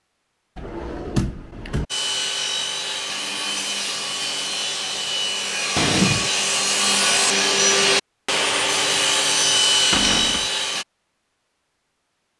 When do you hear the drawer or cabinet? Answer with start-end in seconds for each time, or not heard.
0.6-1.9, 5.8-6.3, 9.9-10.4.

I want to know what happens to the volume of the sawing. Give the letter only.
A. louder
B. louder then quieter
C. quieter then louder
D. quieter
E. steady
A.